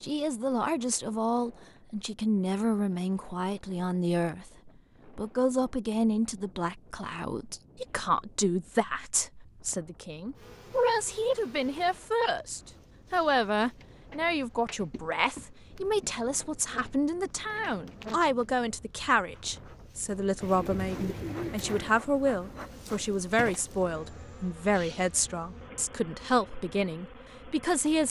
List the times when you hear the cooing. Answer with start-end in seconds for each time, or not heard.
20.4-22.1.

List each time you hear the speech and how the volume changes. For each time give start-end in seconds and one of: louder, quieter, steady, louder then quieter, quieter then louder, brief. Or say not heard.
0.0-28.0 steady.